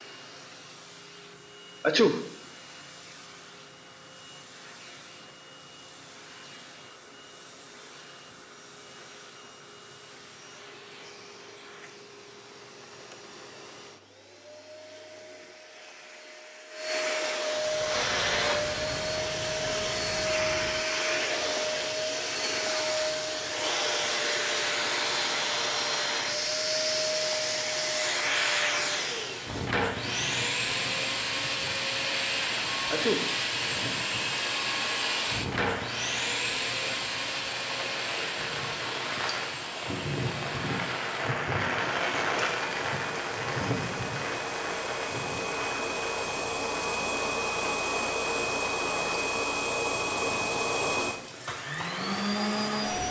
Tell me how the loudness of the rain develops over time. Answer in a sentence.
The volume of the rain goes up, then down.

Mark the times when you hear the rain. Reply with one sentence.
You can hear the rain from 17.6 to 53.0 s.